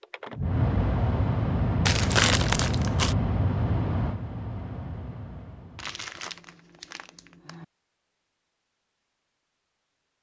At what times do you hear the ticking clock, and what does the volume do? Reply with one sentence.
The ticking clock can't be heard in this clip.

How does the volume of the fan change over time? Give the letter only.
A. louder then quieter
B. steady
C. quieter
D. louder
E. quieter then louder
C.